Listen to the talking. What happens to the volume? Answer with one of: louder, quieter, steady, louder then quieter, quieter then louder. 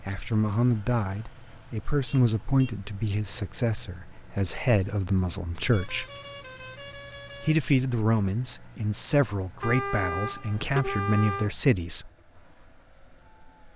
steady.